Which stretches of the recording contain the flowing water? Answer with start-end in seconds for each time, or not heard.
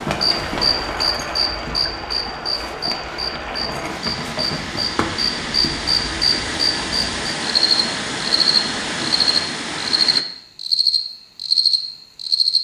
0.0-10.2.